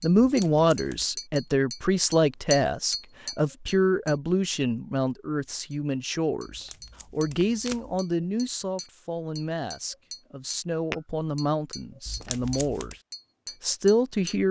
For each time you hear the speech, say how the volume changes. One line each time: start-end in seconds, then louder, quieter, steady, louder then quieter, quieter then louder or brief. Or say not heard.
0.0-12.9 quieter
13.6-14.4 brief.